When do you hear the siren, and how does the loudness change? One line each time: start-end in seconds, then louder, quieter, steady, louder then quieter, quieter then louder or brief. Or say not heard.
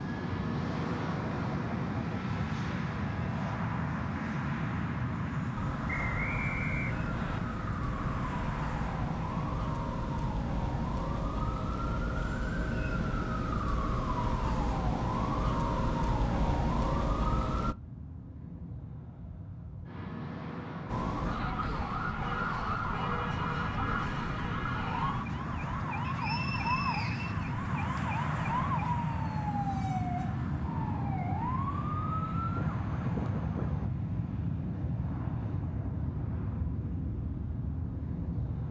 5.5-17.8 louder
20.9-33.9 steady.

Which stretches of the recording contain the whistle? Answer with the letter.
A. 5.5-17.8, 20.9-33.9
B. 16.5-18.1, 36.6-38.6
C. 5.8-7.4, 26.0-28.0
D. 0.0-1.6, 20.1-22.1
C.